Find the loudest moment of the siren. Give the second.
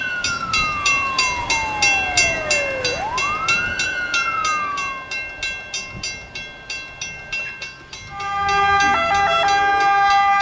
10 s.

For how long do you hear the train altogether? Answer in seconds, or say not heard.
10 s.